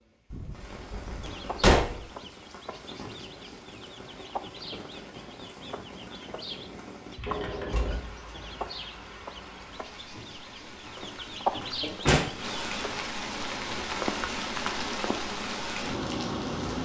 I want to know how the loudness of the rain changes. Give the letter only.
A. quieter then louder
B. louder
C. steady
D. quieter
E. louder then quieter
B.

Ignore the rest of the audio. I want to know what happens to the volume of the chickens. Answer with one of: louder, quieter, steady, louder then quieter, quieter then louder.
louder.